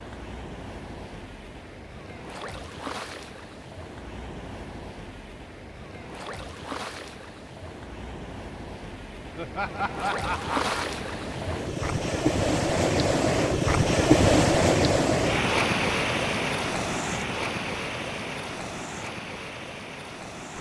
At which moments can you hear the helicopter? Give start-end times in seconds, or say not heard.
not heard.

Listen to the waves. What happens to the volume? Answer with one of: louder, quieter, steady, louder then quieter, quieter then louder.
louder then quieter.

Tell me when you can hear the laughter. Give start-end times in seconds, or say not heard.
9.3-10.8.